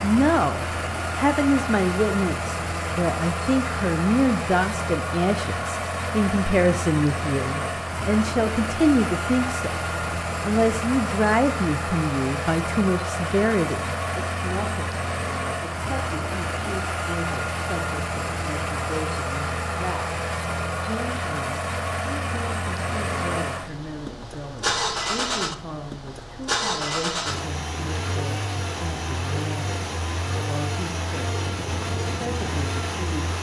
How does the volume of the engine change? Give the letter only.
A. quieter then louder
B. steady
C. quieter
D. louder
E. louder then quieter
B.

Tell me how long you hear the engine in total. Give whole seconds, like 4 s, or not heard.
33 s.